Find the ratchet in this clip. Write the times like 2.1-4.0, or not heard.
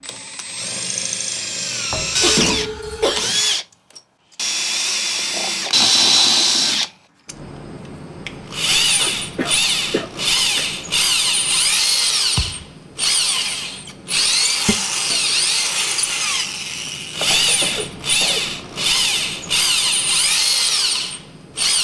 not heard.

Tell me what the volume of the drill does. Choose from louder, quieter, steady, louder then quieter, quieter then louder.
steady.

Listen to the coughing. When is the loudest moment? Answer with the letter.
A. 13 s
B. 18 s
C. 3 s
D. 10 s
C.